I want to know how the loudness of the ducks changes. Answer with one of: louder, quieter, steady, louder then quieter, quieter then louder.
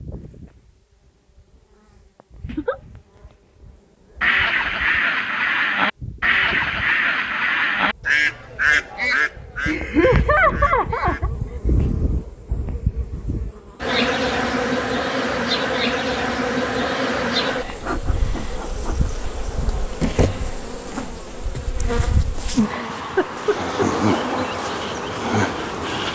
quieter.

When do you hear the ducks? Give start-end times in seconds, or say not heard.
4.2-11.3.